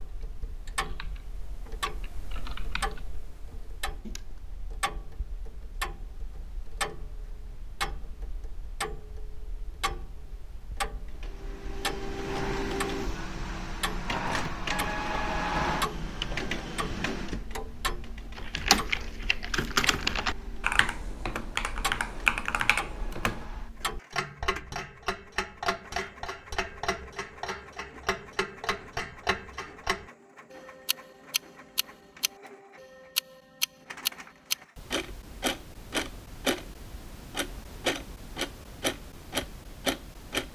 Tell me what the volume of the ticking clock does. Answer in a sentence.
The loudness of the ticking clock goes up.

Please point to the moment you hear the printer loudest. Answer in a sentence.
The loudest moment of the printer is at 15 seconds.